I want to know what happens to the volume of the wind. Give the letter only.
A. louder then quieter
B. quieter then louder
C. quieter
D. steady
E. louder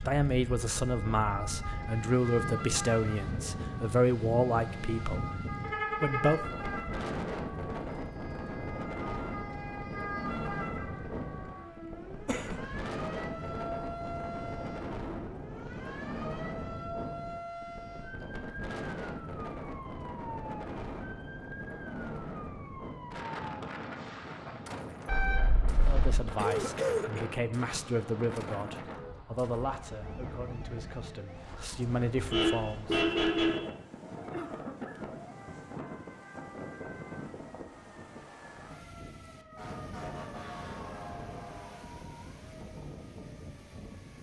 C.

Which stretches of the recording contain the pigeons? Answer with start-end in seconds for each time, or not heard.
not heard.